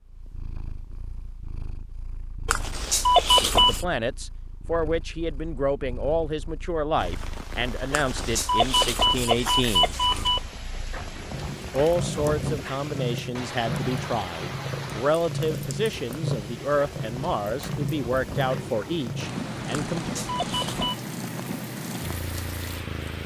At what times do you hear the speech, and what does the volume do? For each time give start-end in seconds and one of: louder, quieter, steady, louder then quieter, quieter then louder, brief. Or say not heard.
3.4-9.9 steady
11.7-20.2 steady.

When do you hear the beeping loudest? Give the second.
3 s.